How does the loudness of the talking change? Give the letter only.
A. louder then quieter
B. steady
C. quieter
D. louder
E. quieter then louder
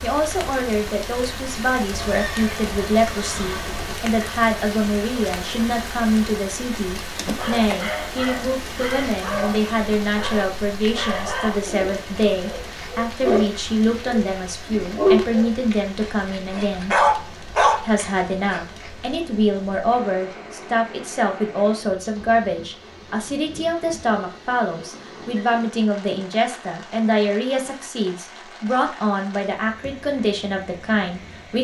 B.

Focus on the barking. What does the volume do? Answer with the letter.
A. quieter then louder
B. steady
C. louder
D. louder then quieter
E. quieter
C.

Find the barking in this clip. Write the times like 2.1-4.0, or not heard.
7.3-18.6.